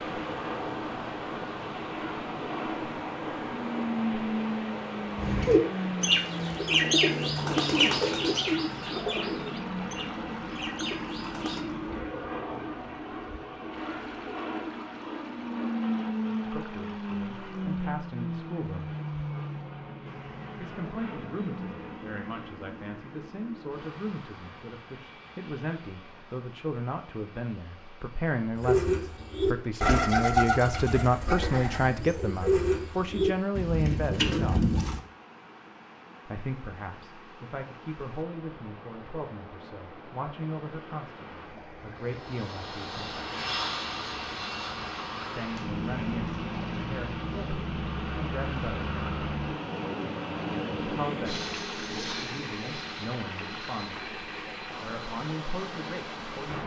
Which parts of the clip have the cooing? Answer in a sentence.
The cooing can be heard from 5.2 to 11.7 s and from 28.6 to 35.0 s.